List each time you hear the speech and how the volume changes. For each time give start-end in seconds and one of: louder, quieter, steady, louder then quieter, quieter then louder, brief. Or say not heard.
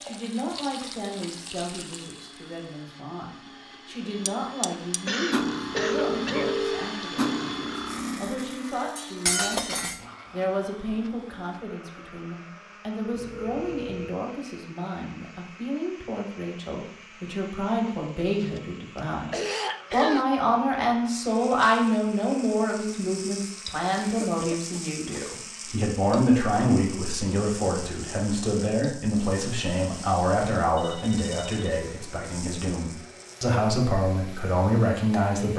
0.0-35.5 louder.